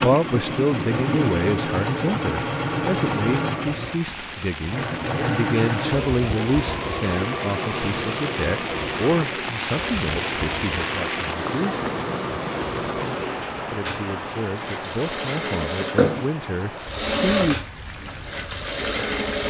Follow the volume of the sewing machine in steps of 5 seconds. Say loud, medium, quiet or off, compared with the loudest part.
loud, loud, medium, loud.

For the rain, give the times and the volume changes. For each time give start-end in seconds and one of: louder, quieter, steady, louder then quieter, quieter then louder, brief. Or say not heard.
0.0-19.4 louder then quieter.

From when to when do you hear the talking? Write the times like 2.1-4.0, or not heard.
0.0-11.8, 13.7-17.6.